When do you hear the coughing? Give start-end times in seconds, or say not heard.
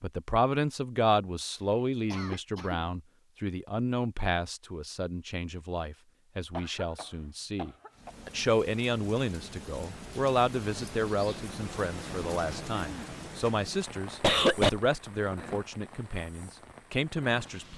2.1-2.9, 6.5-8.1, 12.8-13.5, 14.2-14.7.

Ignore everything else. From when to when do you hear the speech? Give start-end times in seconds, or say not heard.
0.0-17.7.